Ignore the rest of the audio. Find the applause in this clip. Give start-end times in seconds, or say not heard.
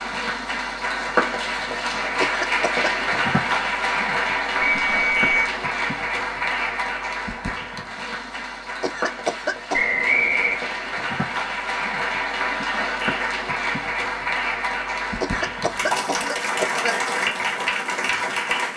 0.0-18.7.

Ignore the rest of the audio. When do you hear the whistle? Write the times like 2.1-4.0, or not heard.
4.6-5.5, 9.7-10.6.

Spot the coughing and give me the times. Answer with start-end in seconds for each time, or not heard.
2.2-2.9, 8.8-9.8, 15.2-17.1.